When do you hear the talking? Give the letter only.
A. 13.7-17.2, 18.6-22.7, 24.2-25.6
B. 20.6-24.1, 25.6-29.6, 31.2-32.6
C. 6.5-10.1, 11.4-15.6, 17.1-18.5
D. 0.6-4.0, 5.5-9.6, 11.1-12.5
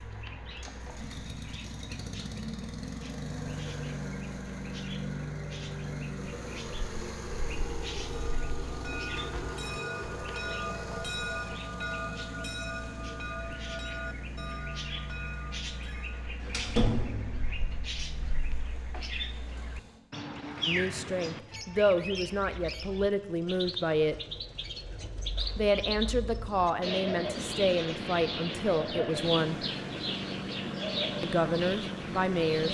B.